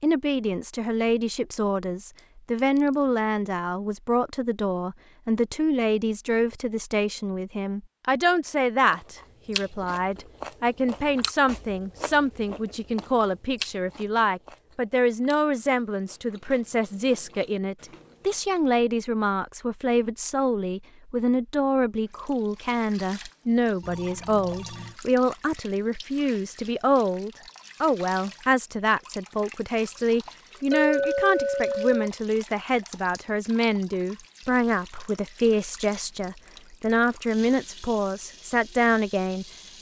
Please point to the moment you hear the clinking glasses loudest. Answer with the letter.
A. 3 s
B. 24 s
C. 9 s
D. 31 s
D.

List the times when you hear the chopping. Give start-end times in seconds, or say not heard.
not heard.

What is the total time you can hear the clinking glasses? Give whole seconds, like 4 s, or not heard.
2 s.